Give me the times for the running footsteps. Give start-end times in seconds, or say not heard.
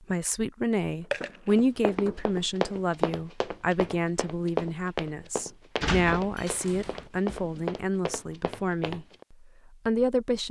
1.4-9.2.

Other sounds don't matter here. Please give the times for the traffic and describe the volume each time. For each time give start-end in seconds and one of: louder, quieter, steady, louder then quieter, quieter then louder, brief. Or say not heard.
not heard.